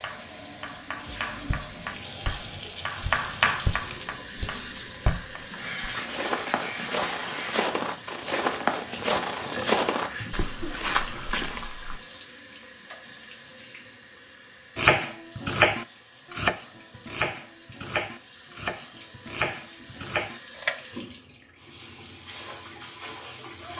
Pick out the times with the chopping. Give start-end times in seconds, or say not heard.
0.0-5.4, 14.8-20.9.